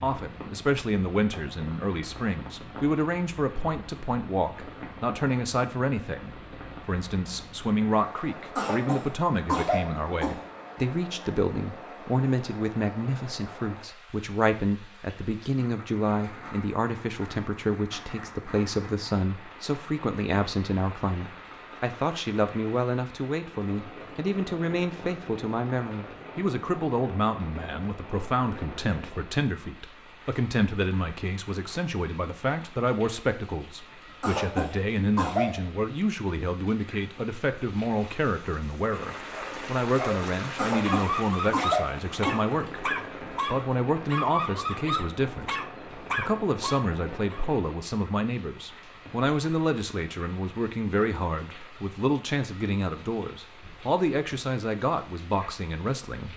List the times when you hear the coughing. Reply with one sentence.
The coughing can be heard from 8.6 to 10.4 s, from 34.2 to 35.6 s and from 40.5 to 42.5 s.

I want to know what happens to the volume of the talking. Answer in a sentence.
The volume of the talking stays about the same.